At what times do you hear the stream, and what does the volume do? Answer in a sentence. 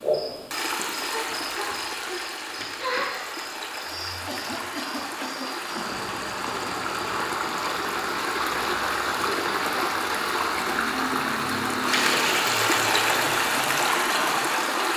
The stream can be heard from 0.0 to 14.9 s, getting louder.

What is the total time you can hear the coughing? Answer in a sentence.
The coughing can be heard for 2 seconds in total.